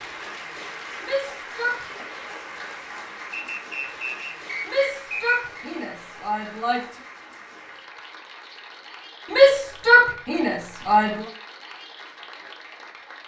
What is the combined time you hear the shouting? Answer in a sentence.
The shouting can be heard for 5 seconds in total.